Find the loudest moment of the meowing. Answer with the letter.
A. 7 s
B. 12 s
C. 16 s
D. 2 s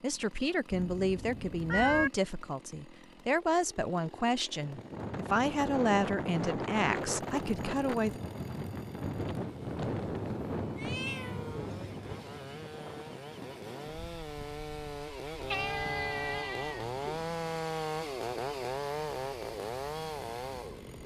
D.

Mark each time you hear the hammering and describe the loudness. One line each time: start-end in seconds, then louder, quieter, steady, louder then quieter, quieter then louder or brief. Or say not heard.
not heard.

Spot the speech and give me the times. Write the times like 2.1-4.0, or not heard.
0.0-8.2.